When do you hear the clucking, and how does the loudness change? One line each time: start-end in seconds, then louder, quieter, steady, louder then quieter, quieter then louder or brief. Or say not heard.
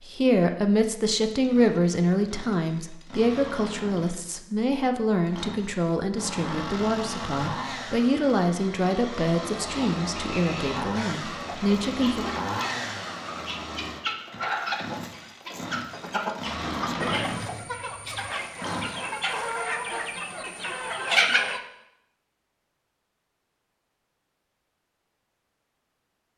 9.7-21.6 louder.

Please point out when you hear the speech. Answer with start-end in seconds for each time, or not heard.
0.0-12.2.